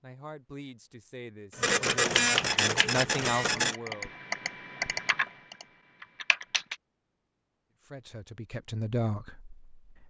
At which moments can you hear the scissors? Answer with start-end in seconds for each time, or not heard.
not heard.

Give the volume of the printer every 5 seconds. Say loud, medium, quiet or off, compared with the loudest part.
loud, off.